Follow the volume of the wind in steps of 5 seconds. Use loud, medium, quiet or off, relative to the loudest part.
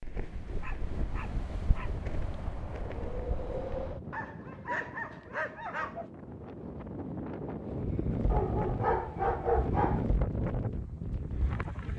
medium, loud, loud.